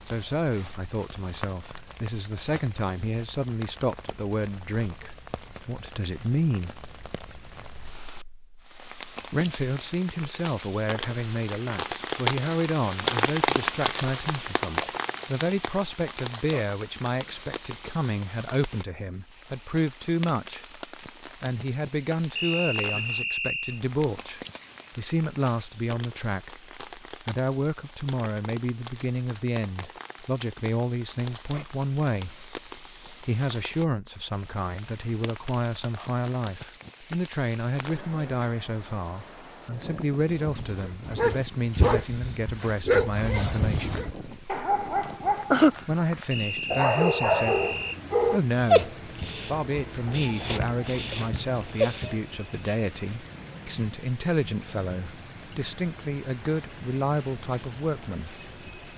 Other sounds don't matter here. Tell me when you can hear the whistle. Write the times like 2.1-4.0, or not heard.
22.4-23.8, 46.3-48.0.